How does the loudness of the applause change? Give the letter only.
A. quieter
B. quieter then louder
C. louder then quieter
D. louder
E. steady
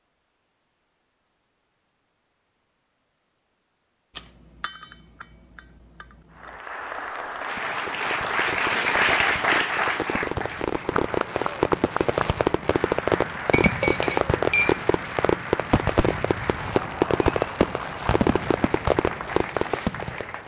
A.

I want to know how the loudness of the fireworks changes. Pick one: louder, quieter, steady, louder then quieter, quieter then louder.
louder.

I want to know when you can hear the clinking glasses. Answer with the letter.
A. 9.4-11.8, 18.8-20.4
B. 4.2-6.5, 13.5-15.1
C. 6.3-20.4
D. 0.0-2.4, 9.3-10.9
B.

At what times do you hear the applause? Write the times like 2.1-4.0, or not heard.
6.3-20.4.